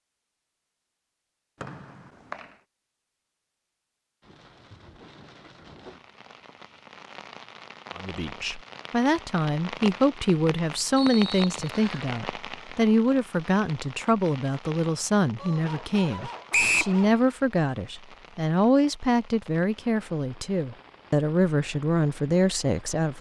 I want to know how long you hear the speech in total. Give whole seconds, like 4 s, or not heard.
15 s.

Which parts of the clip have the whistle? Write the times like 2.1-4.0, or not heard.
1.6-2.5, 10.9-12.1, 16.5-16.9.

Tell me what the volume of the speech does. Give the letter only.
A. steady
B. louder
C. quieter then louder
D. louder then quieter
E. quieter
A.